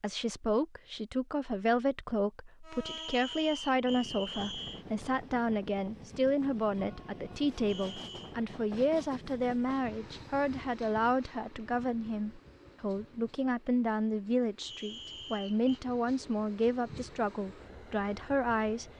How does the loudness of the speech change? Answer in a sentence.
The volume of the speech stays about the same.